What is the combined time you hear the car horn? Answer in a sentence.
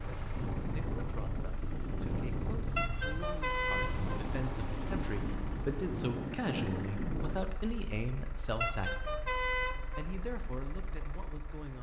The car horn can be heard for 3 seconds in total.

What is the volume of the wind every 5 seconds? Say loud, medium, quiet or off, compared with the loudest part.
loud, loud, off.